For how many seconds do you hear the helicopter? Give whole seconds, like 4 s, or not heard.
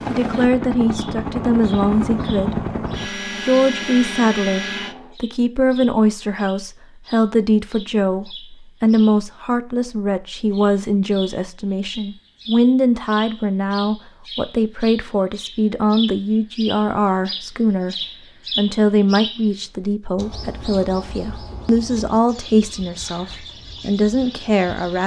5 s.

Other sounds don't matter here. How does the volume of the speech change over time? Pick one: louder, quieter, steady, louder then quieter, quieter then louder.
steady.